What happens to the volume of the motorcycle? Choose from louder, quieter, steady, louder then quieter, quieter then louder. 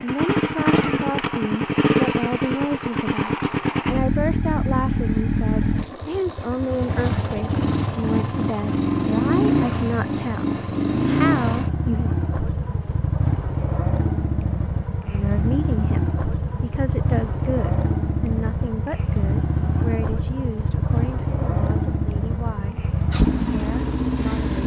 steady.